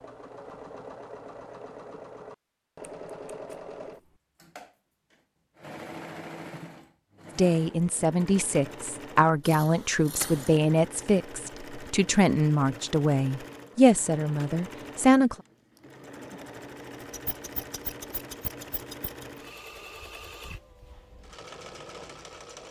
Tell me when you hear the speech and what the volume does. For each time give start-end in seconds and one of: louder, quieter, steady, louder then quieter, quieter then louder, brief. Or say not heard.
7.3-15.3 steady.